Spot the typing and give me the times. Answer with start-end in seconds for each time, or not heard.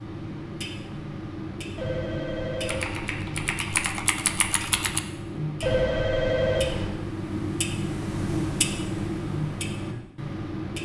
2.6-5.0.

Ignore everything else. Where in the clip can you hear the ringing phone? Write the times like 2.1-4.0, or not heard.
1.8-3.5, 5.6-7.0.